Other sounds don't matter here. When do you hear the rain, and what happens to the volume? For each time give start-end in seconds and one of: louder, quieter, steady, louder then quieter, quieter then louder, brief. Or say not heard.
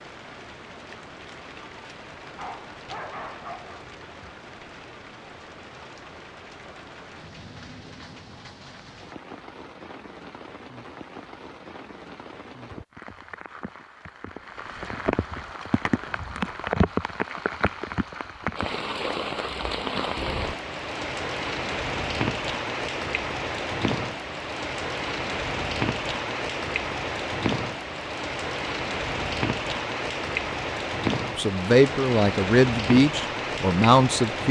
0.0-34.4 louder.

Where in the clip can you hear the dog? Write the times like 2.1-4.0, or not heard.
2.2-3.9.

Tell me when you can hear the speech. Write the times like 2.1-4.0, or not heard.
31.4-34.4.